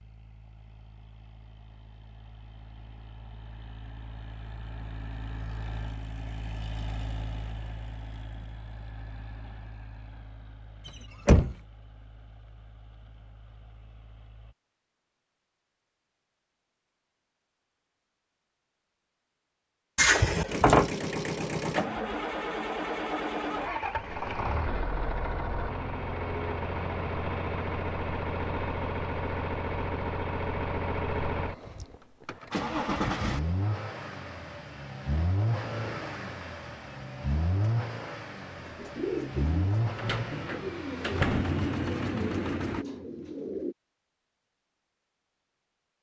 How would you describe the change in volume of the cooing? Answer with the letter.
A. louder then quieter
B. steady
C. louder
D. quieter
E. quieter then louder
D.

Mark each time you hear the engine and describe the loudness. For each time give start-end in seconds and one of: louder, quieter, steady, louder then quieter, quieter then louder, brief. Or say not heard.
0.0-14.6 louder then quieter
20.4-42.9 steady.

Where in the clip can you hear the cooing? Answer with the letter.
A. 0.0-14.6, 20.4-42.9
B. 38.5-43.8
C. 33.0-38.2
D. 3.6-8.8
B.